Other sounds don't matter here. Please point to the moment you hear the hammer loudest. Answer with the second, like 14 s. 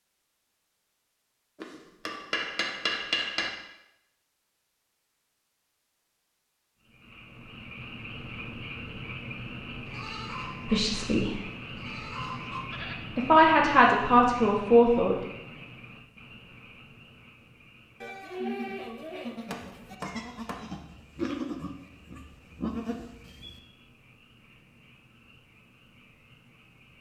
3 s.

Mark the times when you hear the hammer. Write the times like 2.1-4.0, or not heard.
1.6-3.5, 19.5-21.4.